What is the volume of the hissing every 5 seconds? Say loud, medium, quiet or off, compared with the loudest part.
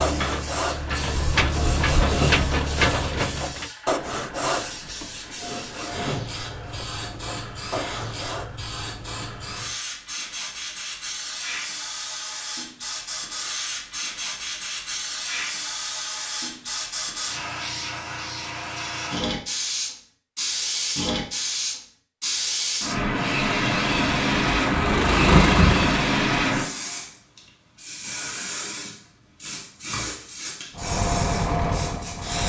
quiet, medium, medium, medium, loud, loud, medium.